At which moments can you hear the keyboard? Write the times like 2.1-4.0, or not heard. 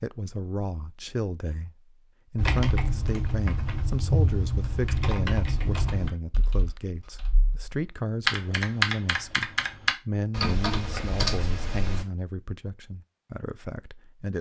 2.4-12.1.